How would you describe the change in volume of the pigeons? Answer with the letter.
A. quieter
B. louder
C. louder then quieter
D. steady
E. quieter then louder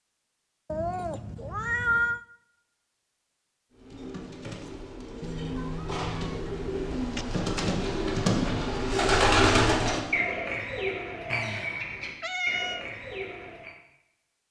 C.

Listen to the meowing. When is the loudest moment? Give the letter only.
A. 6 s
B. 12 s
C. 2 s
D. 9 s
C.